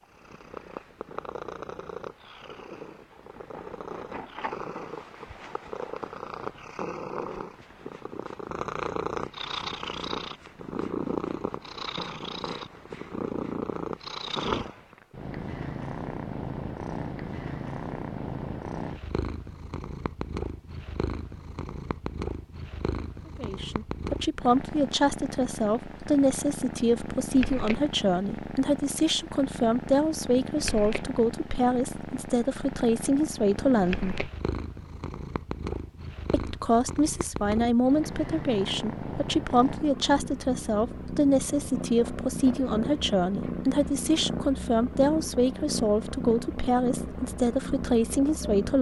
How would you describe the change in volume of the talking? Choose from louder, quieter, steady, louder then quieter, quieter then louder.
steady.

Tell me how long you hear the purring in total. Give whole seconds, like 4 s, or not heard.
49 s.